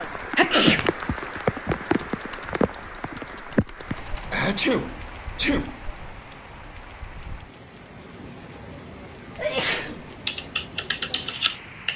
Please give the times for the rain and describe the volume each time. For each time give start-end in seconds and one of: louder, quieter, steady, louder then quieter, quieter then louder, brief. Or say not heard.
0.0-11.9 quieter.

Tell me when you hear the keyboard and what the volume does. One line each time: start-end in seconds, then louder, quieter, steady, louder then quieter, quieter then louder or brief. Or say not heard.
0.0-4.5 louder
10.2-11.9 brief.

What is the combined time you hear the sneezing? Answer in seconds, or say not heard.
3 s.